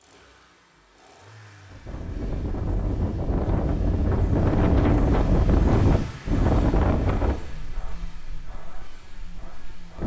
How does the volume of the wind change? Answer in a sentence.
The volume of the wind goes up, then down.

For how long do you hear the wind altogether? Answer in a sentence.
You can hear the wind for 8 seconds altogether.